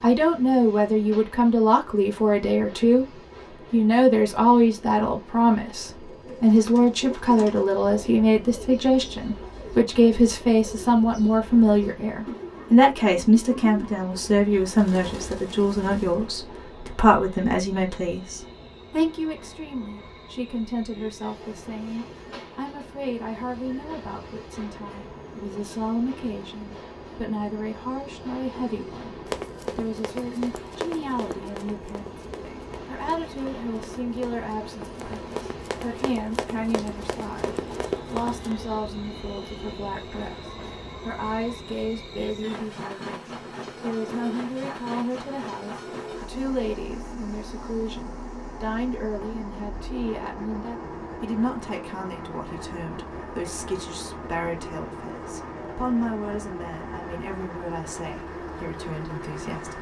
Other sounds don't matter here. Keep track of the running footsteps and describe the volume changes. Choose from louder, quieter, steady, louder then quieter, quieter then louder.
quieter then louder.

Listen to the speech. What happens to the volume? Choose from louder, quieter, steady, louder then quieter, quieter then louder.
quieter.